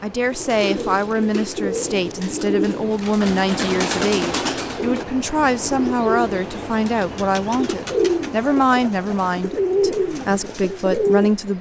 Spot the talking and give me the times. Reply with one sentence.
You can hear the talking from 0.0 to 11.5 s.